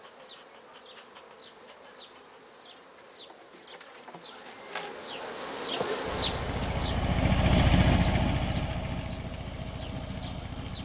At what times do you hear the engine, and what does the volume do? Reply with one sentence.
The engine can be heard from 6.0 to 10.8 s, getting louder then quieter.